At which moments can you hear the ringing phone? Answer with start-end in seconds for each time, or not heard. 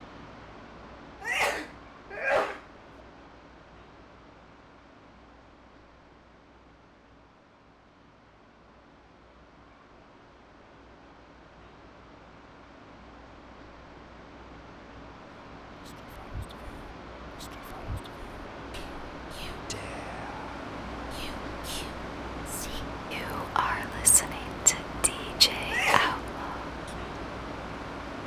not heard.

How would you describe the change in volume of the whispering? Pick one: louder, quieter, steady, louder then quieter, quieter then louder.
louder.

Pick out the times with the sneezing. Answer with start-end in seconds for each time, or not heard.
1.2-2.6, 25.6-26.2.